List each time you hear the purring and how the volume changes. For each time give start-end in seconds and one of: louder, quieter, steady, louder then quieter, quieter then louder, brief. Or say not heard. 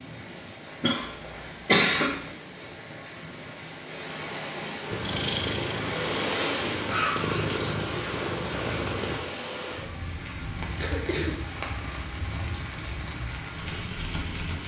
4.9-9.2 quieter then louder.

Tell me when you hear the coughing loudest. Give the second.
2 s.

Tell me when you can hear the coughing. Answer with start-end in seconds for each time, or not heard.
0.8-2.1, 10.8-11.4.